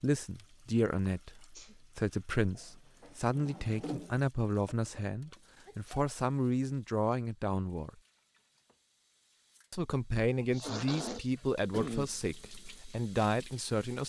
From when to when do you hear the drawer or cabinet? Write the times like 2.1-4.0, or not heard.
2.5-4.2.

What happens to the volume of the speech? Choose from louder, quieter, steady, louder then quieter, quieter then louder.
steady.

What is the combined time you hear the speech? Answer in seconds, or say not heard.
12 s.